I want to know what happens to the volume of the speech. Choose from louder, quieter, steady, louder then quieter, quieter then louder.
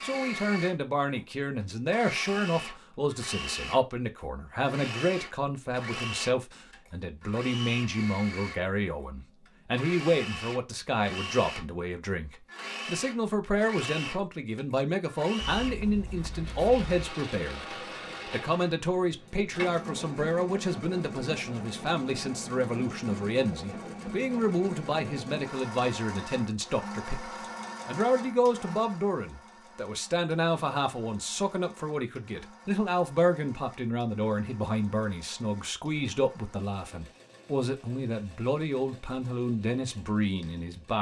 steady.